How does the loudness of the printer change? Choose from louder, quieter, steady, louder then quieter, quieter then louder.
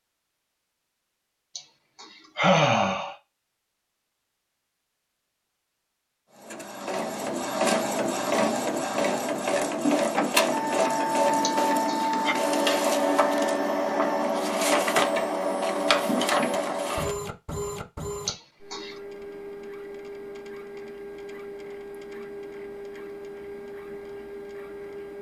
quieter.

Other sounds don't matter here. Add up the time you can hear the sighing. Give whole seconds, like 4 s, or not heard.
3 s.